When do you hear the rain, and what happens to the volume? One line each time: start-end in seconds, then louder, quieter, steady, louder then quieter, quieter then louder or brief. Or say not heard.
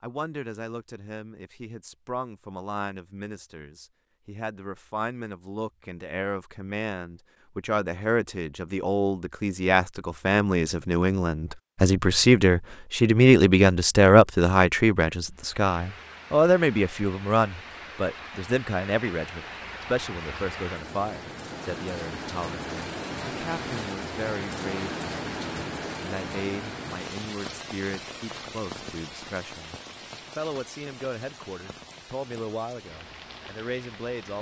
15.3-34.3 louder then quieter.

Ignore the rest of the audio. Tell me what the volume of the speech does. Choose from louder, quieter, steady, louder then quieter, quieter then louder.
louder then quieter.